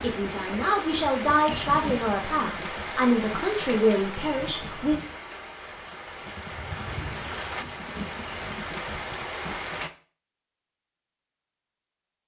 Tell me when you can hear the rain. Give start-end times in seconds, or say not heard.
0.0-9.9.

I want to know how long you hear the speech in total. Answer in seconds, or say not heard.
5 s.